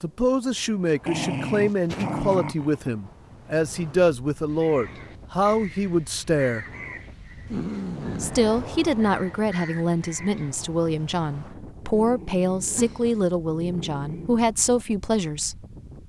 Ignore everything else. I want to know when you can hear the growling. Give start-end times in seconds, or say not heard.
1.1-2.9, 7.5-8.4, 11.9-14.4.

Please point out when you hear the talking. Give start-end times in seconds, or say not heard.
0.0-6.7, 8.2-15.7.